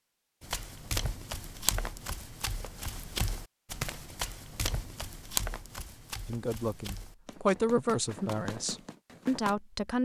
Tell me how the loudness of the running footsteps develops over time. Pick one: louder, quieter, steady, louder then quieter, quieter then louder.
quieter.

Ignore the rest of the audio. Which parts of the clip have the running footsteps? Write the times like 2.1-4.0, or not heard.
0.4-9.6.